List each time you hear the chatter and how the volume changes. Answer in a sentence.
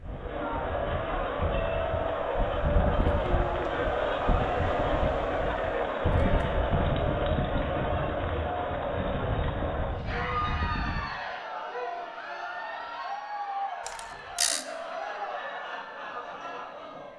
You can hear the chatter from 0.0 to 17.1 s, getting quieter.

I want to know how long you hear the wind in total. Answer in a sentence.
You can hear the wind for 11 seconds altogether.